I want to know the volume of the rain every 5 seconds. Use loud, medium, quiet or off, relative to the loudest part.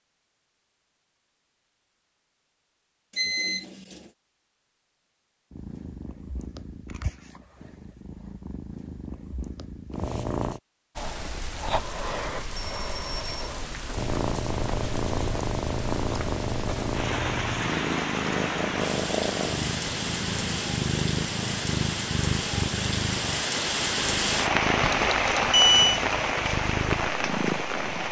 off, off, medium, medium, loud, loud.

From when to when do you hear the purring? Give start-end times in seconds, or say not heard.
5.5-10.6, 13.9-28.0.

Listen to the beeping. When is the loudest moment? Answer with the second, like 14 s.
26 s.